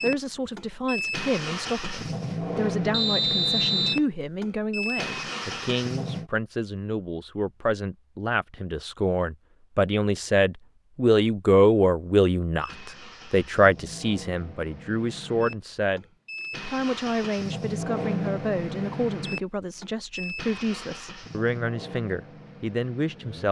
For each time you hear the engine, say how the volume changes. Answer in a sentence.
The engine can be heard from 0.0 to 6.3 s, at a steady volume; and from 12.6 to 23.4 s, getting louder then quieter.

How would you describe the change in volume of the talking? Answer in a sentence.
The volume of the talking goes up, then down.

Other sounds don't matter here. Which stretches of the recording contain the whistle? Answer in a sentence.
You can hear the whistle from 2.9 to 4.0 s.